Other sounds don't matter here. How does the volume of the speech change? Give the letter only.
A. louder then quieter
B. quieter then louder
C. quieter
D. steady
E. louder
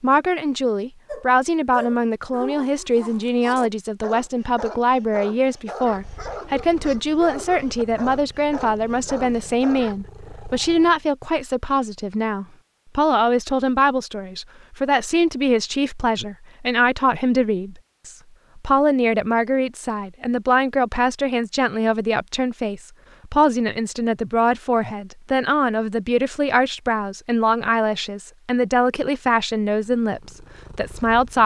D.